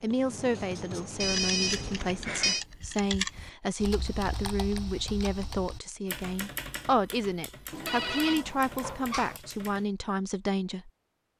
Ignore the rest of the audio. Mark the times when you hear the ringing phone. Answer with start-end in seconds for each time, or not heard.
1.2-2.6, 7.7-9.4.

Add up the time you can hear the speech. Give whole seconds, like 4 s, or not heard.
11 s.